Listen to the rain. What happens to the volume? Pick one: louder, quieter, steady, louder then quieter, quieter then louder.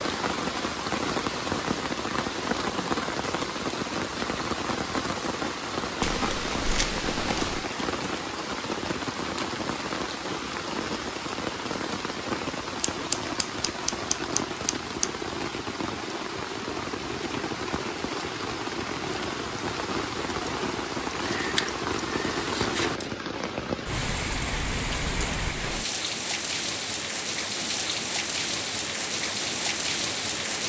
steady.